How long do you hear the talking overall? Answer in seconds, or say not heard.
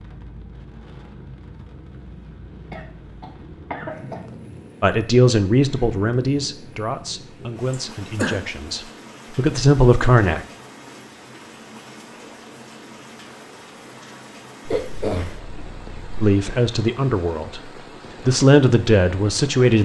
9 s.